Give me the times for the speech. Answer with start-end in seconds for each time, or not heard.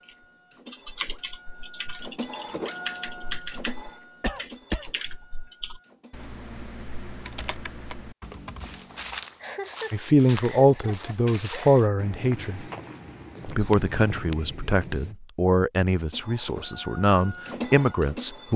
9.9-12.7, 13.4-18.5.